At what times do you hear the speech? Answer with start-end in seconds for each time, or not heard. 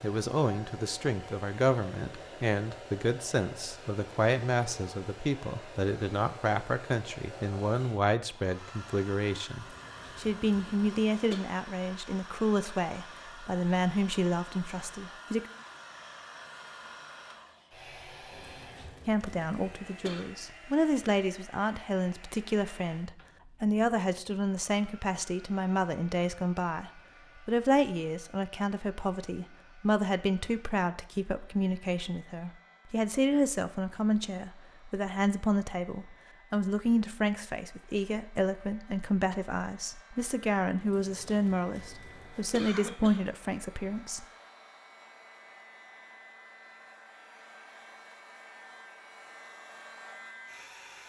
0.0-15.5, 19.1-44.2.